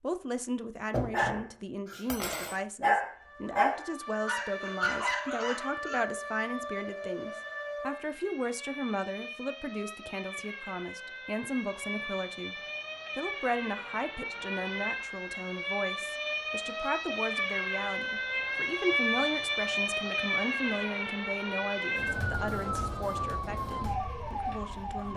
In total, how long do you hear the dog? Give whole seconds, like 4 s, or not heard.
5 s.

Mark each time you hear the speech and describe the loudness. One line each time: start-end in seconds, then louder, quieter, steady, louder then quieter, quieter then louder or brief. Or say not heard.
0.0-25.1 steady.